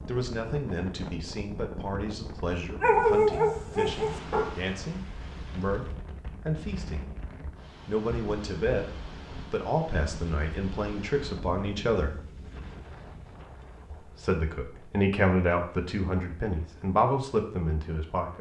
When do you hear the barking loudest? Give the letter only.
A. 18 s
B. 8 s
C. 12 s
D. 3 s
D.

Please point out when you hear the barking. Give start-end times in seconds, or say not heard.
2.8-4.5.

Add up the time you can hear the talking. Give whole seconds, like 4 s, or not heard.
16 s.